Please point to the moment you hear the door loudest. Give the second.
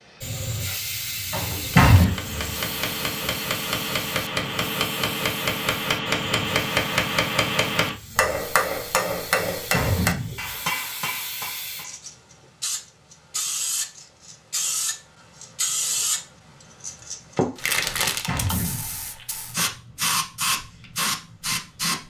2 s.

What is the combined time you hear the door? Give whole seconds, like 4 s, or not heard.
3 s.